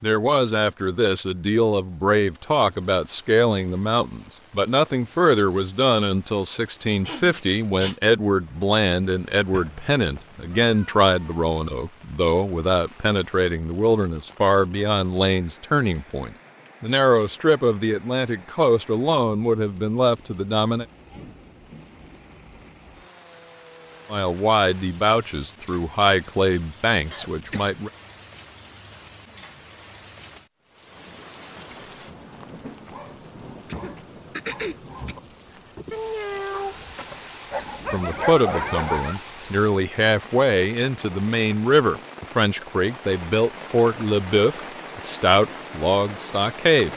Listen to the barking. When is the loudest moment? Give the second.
38 s.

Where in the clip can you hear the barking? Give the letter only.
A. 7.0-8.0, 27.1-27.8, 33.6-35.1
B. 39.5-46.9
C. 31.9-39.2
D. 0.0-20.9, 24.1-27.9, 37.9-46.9
C.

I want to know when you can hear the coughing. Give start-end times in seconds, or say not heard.
7.0-8.0, 27.1-27.8, 33.6-35.1.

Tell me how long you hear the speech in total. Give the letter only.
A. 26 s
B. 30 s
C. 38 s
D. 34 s
D.